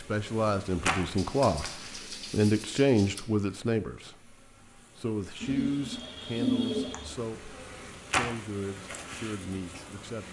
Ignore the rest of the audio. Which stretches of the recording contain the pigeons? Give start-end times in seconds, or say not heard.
1.1-3.2, 5.4-7.2.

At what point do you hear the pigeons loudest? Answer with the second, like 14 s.
7 s.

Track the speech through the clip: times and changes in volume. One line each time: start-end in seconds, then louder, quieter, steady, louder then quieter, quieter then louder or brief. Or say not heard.
0.0-10.2 quieter.